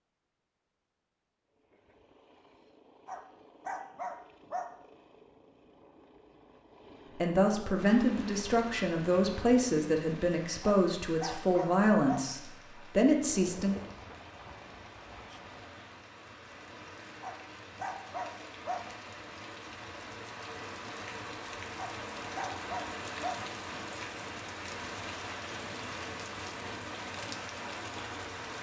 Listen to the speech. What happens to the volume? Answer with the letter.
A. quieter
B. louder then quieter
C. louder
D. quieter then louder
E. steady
E.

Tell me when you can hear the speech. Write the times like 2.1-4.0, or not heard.
7.2-13.8.